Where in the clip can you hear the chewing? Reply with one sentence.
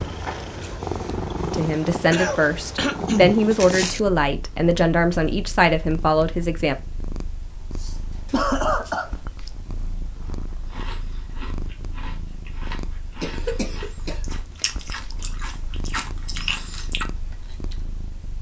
The chewing can be heard from 10.2 to 17.9 s.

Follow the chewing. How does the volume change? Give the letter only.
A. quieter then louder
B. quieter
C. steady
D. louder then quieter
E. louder
E.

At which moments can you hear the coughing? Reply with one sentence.
You can hear the coughing from 2.1 to 3.4 s, from 7.7 to 9.1 s and from 13.2 to 14.7 s.